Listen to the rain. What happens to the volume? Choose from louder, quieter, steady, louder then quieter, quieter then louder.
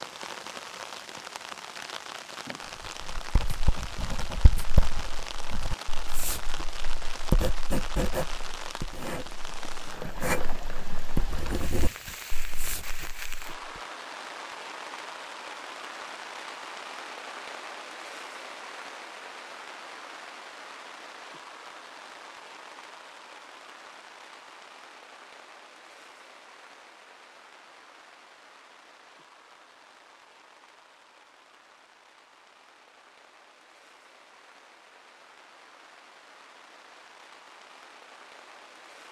quieter.